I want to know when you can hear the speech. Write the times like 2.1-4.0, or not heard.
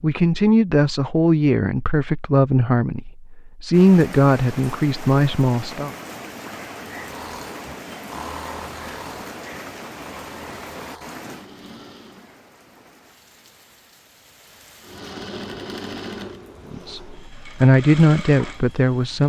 0.0-5.9, 16.7-19.2.